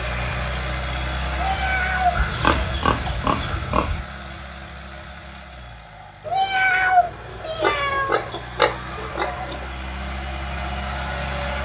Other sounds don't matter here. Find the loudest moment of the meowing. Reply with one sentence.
The loudest moment of the meowing is at 7 seconds.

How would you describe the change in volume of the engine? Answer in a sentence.
The volume of the engine goes down, then up.